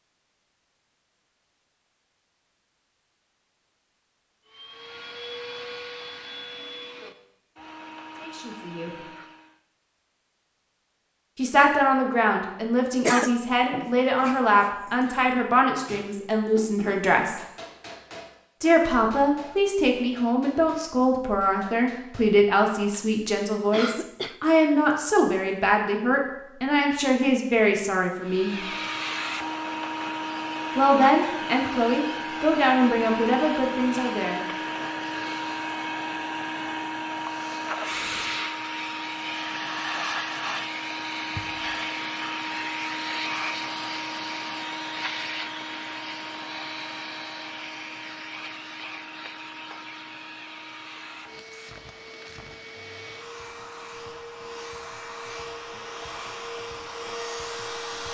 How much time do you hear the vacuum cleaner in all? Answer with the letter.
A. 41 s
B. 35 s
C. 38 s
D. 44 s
B.